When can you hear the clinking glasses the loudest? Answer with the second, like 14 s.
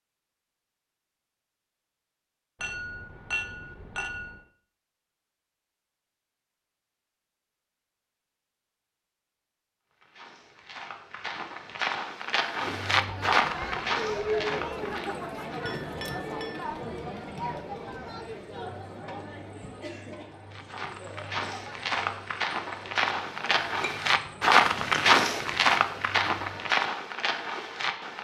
3 s.